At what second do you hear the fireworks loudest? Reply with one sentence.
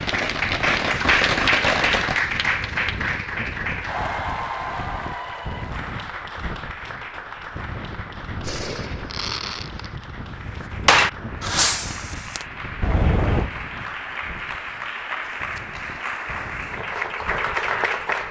The volume of the fireworks peaks at 11 seconds.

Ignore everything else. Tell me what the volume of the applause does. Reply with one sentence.
The loudness of the applause goes down, then up.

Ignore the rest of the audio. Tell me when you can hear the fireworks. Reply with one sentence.
The fireworks can be heard from 0.0 to 2.2 s and from 8.4 to 13.5 s.